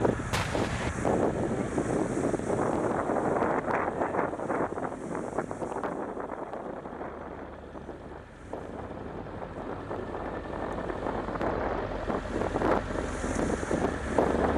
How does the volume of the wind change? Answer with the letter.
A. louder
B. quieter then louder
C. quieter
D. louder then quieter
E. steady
B.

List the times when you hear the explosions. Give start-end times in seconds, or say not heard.
0.3-0.9.